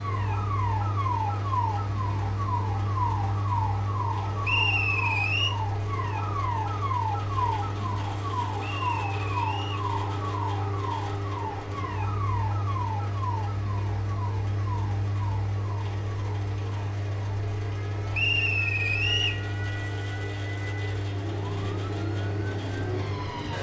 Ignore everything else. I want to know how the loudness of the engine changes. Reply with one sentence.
The loudness of the engine stays about the same.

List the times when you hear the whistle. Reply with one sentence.
You can hear the whistle from 4.4 to 5.5 s, from 8.6 to 9.9 s and from 18.1 to 19.4 s.